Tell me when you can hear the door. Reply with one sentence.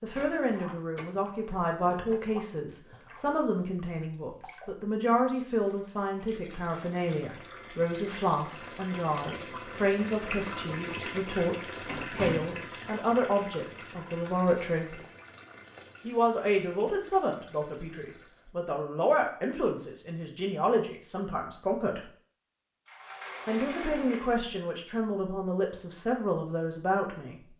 The door can be heard from 0.1 to 1.1 s, from 11.1 to 12.7 s and from 22.9 to 24.6 s.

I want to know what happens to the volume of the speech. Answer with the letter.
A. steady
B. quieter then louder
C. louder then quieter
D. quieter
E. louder
A.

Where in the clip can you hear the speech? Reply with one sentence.
The speech can be heard from 0.0 to 14.9 s, from 16.0 to 22.1 s and from 23.4 to 27.5 s.